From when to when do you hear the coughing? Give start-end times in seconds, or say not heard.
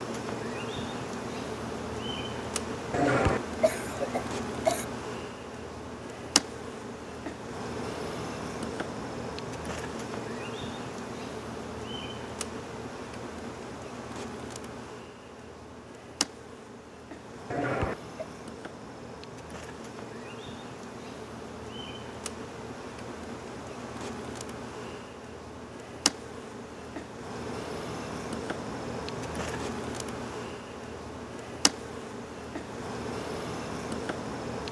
2.9-4.8, 17.5-18.1.